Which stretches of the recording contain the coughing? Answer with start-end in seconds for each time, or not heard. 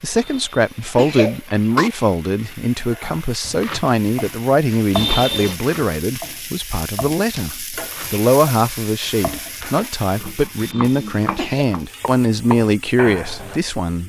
0.2-1.9, 5.0-5.5, 10.6-11.7.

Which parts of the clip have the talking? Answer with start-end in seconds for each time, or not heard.
0.0-14.0.